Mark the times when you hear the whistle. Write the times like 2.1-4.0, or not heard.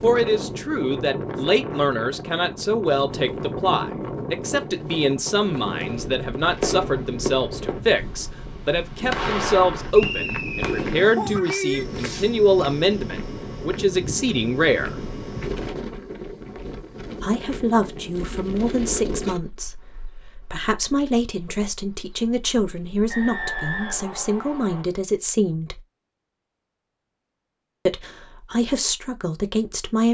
9.9-10.7, 23.1-24.9.